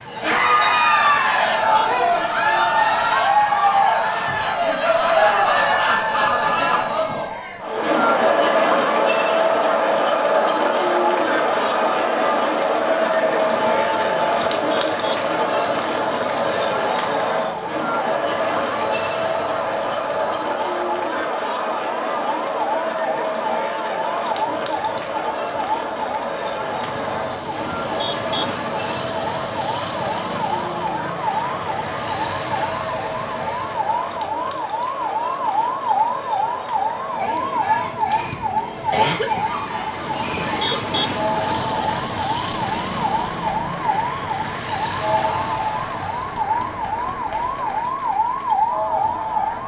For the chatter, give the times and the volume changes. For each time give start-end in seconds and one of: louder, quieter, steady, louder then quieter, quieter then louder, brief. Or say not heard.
0.1-49.6 quieter.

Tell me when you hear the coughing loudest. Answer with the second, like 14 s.
39 s.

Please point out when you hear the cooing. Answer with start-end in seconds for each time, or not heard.
not heard.